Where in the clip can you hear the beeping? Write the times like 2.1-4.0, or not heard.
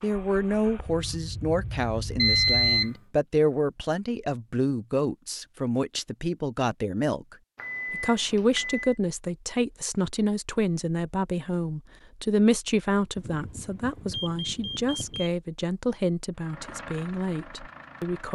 2.1-2.9, 7.5-8.9, 13.2-15.3.